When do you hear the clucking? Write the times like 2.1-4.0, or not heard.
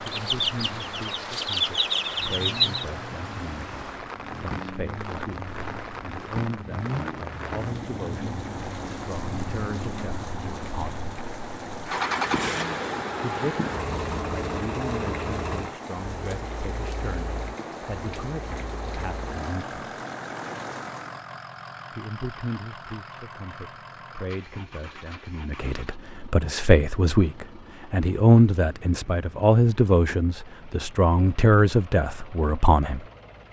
0.1-2.9.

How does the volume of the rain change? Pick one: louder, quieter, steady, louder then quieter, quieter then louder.
steady.